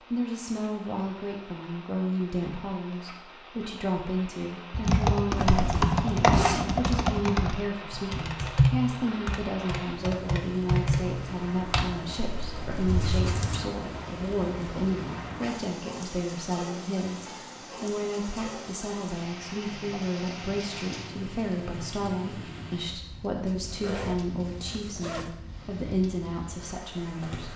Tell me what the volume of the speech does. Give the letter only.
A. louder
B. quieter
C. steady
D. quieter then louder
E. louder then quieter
C.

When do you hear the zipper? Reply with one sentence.
You can hear the zipper from 5.3 to 6.8 s, from 12.8 to 13.7 s and from 23.4 to 25.3 s.